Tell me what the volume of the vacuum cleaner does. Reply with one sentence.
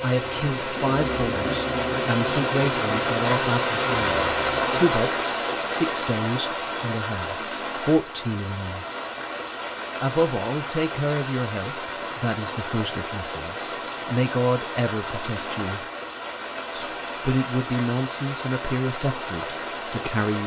The loudness of the vacuum cleaner stays about the same.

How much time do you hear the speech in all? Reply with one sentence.
You can hear the speech for 18 seconds altogether.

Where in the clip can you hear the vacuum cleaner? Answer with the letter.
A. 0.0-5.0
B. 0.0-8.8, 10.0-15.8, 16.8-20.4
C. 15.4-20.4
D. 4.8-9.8
A.